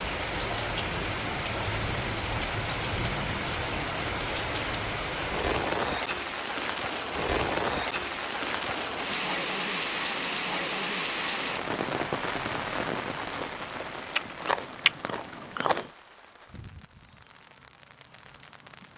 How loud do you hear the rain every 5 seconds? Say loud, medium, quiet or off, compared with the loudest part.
loud, loud, loud, quiet.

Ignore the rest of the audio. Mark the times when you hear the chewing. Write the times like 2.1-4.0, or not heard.
13.3-15.8.